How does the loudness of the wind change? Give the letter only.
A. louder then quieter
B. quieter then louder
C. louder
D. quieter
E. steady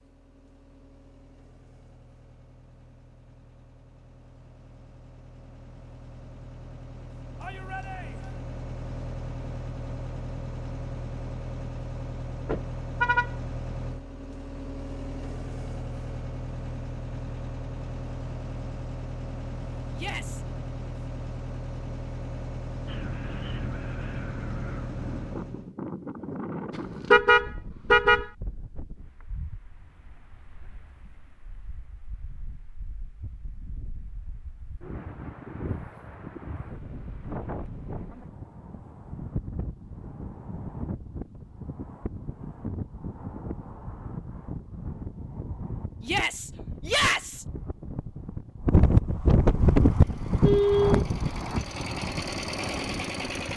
B.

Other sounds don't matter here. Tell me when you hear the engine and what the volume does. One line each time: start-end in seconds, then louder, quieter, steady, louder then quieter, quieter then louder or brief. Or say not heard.
0.0-25.8 louder
49.5-53.5 louder.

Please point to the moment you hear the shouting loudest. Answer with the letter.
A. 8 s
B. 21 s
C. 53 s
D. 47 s
D.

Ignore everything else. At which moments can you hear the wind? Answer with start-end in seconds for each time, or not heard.
22.9-53.5.